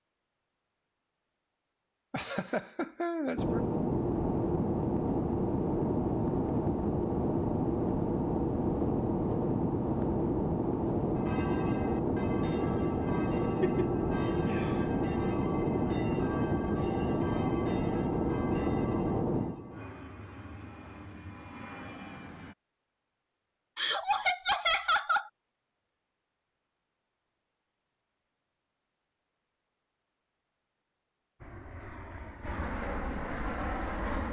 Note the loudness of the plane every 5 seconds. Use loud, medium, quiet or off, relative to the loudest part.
loud, loud, loud, loud, quiet, off, medium.